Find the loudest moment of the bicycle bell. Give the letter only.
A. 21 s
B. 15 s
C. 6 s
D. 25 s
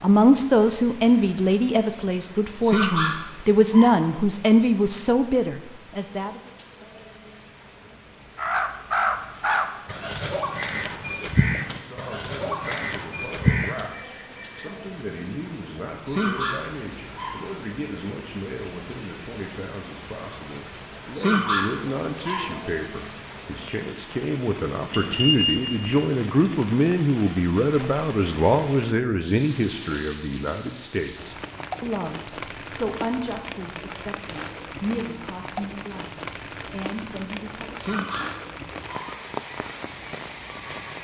D.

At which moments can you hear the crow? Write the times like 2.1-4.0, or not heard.
8.3-13.9.